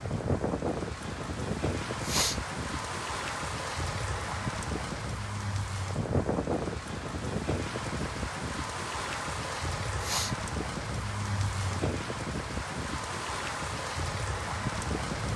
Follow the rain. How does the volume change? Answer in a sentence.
The loudness of the rain stays about the same.